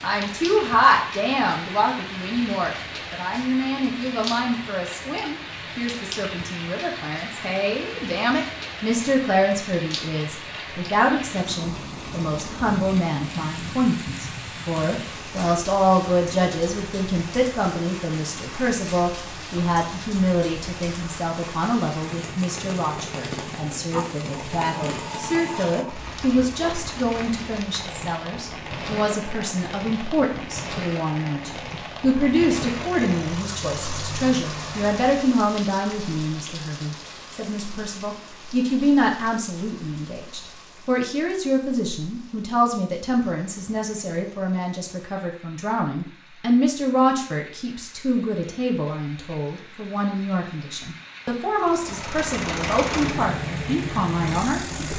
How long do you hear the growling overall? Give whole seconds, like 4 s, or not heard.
2 s.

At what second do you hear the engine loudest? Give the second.
53 s.